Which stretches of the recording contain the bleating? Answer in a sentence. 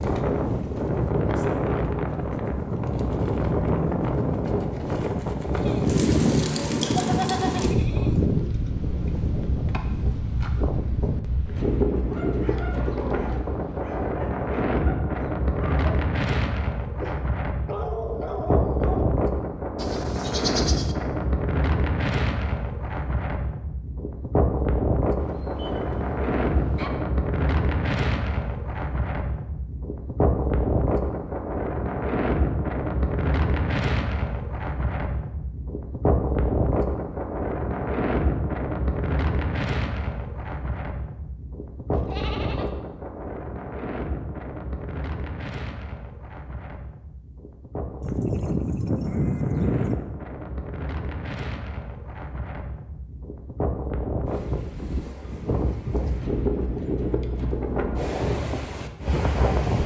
You can hear the bleating from 5.7 to 8.6 s, from 19.8 to 20.9 s, from 25.2 to 26.9 s, from 41.9 to 42.6 s and from 48.0 to 50.0 s.